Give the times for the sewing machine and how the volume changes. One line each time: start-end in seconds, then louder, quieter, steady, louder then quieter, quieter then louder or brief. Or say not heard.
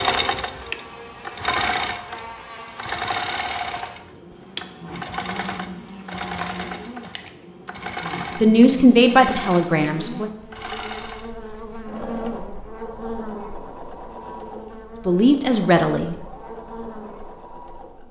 0.0-18.0 quieter.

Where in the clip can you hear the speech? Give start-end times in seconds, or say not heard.
8.4-10.3, 15.1-16.1.